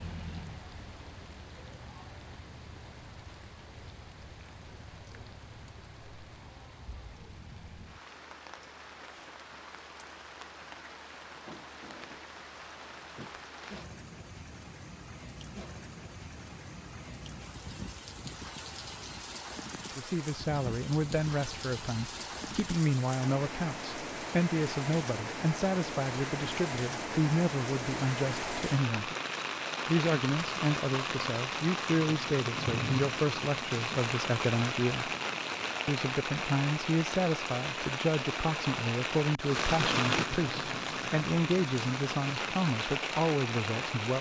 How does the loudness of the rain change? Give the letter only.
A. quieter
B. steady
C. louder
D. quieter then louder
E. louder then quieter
C.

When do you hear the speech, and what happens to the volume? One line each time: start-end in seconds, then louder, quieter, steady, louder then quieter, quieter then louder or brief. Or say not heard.
19.9-29.1 steady
29.9-35.1 steady
35.9-44.1 steady.